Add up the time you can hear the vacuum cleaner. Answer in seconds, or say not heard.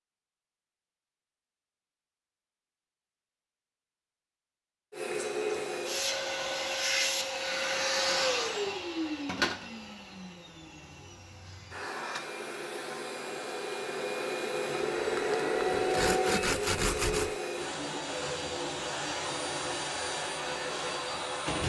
17 s.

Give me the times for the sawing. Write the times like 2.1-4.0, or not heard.
15.0-17.4.